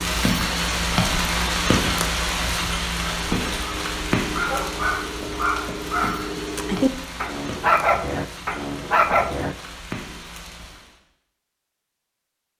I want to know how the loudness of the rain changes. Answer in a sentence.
The volume of the rain goes down.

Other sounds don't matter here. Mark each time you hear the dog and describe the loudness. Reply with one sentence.
You can hear the dog from 3.0 to 9.6 s, getting louder.